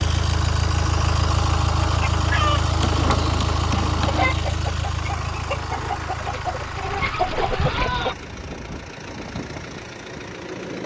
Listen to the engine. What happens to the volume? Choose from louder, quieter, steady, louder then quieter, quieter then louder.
quieter.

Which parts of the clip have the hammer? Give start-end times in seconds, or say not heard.
2.8-4.3.